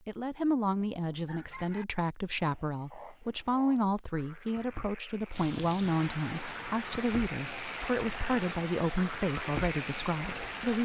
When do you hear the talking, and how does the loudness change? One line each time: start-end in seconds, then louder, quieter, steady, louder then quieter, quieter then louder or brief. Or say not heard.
0.1-10.8 steady.